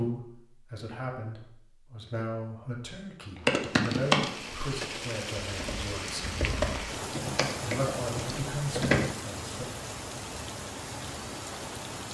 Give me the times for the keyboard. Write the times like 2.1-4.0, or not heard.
3.5-9.1.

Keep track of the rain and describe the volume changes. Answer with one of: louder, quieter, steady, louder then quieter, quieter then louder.
steady.